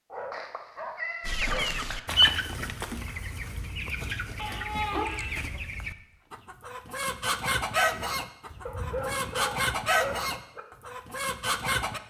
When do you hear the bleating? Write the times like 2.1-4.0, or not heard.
not heard.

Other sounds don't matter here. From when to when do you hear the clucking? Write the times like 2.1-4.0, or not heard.
1.2-12.0.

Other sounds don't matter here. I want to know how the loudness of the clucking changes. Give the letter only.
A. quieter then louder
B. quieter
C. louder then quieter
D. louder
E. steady
A.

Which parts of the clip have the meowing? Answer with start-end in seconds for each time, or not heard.
0.3-2.0, 4.3-5.5, 8.5-9.4.